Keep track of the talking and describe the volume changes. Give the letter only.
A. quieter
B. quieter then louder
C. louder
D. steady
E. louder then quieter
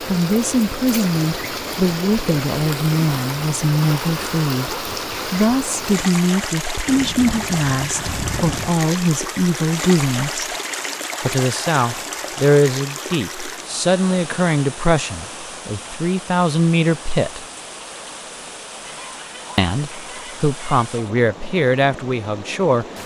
D.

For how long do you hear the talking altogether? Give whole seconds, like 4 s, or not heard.
20 s.